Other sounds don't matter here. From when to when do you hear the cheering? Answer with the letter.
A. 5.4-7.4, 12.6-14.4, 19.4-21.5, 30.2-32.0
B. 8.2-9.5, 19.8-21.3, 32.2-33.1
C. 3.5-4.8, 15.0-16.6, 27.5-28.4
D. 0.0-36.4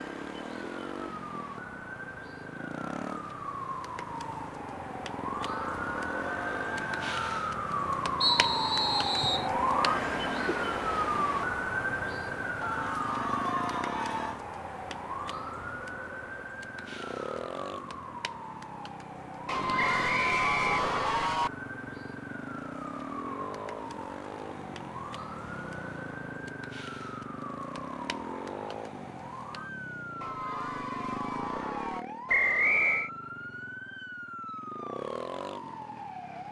A.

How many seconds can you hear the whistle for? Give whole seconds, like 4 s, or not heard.
4 s.